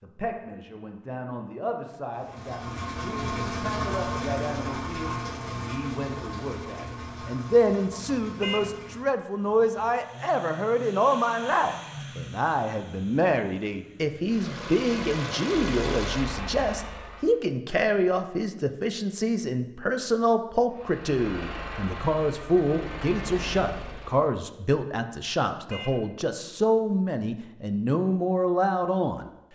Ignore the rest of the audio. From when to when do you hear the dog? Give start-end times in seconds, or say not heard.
not heard.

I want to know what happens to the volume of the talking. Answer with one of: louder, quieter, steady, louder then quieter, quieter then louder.
louder.